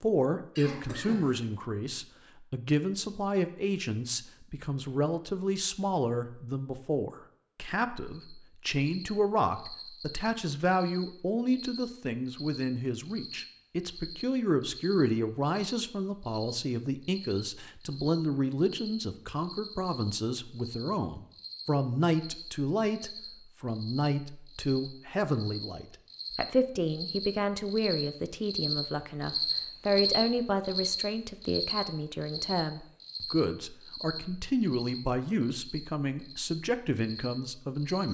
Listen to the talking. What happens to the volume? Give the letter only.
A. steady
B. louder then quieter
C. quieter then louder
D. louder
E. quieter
A.